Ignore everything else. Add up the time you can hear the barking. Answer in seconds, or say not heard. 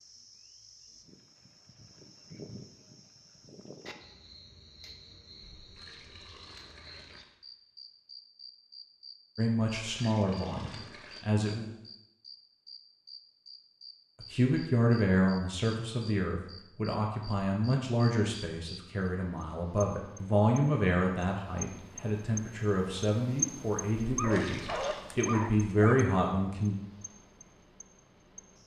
2 s.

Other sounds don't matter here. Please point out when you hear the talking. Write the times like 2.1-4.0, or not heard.
9.3-11.7, 14.2-26.8.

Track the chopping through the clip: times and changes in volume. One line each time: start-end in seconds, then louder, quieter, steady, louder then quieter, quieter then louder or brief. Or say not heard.
not heard.